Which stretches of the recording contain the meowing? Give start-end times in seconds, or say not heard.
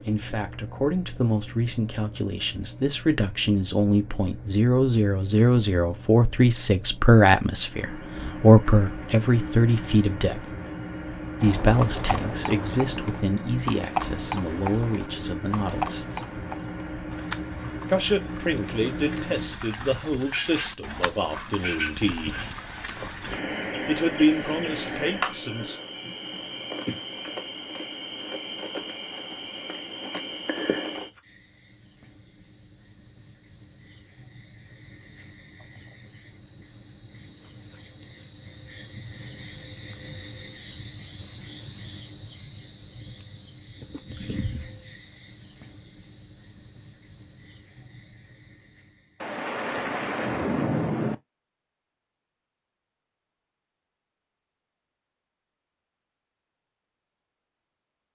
not heard.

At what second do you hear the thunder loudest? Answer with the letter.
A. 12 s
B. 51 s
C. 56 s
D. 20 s
B.